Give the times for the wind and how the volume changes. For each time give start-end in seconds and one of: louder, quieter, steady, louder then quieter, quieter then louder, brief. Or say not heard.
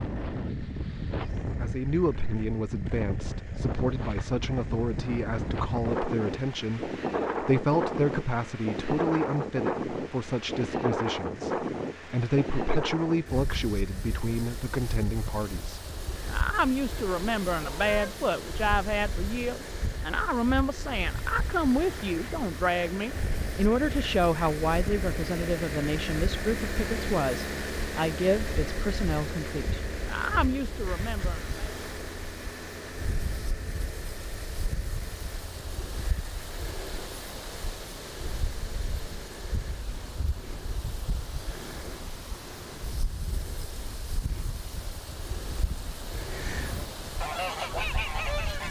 0.0-48.6 quieter.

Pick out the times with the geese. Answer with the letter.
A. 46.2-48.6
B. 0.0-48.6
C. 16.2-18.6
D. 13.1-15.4
A.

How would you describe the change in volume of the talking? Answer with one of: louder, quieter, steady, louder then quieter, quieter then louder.
steady.